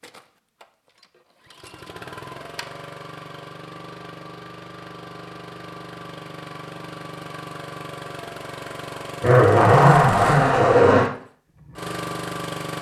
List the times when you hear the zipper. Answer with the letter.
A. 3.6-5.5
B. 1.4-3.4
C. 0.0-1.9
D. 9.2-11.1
D.